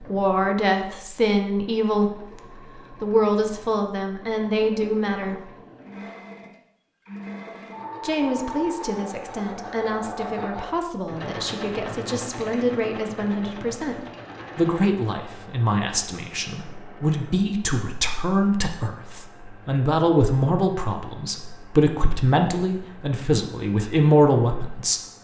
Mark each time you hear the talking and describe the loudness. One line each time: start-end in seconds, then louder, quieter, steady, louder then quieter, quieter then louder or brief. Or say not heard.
0.0-5.5 steady
8.0-25.0 louder.